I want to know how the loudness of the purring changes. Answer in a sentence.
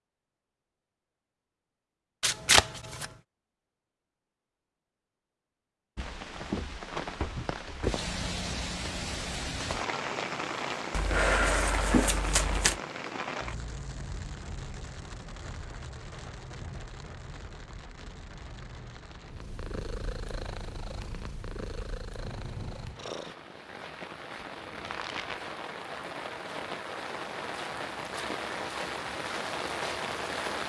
The volume of the purring goes down.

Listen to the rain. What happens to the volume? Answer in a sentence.
The volume of the rain goes down, then up.